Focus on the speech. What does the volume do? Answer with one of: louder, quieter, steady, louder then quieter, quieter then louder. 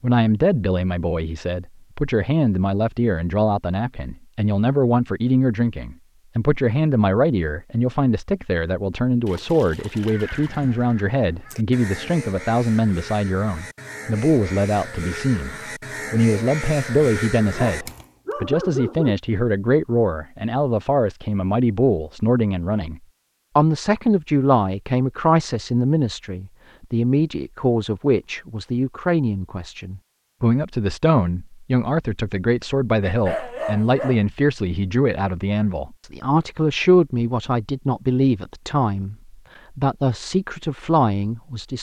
steady.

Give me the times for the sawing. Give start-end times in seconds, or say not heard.
not heard.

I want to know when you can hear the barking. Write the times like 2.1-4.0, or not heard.
17.6-19.1, 33.0-34.2.